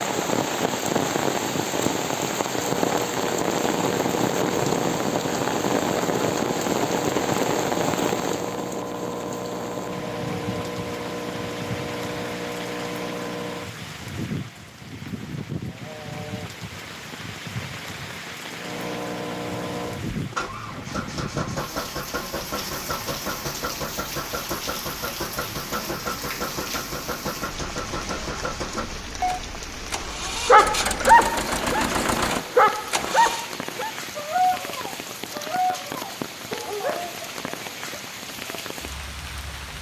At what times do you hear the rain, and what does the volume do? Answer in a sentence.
The rain can be heard from 0.0 to 39.7 s, getting quieter.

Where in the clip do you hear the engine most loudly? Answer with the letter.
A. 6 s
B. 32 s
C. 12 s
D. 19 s
B.